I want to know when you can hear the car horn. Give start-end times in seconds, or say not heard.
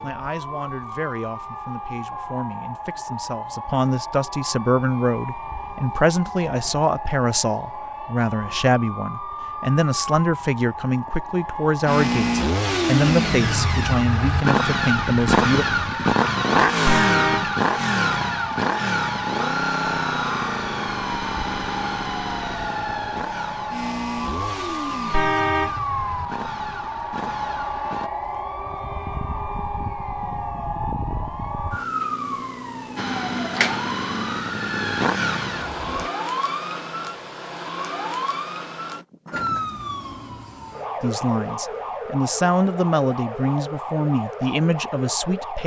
16.9-17.5, 25.1-25.8.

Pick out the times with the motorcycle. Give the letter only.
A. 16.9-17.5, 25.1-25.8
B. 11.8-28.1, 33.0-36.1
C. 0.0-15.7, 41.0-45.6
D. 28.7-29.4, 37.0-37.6
B.